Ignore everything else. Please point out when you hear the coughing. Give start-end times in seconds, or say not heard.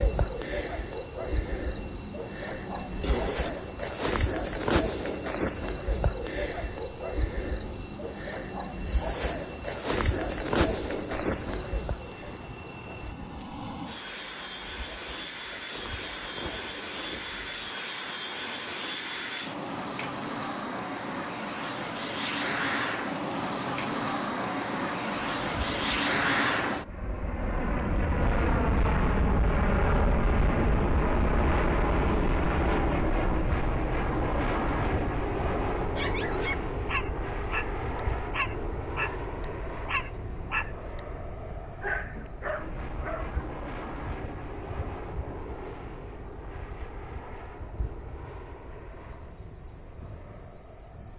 2.7-3.5.